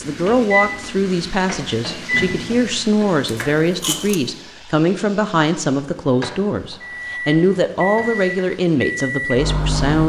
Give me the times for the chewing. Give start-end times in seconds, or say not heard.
3.2-4.2.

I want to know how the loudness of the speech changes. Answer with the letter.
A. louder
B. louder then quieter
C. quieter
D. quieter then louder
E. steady
E.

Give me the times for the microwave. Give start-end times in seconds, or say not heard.
0.0-2.8, 6.8-10.0.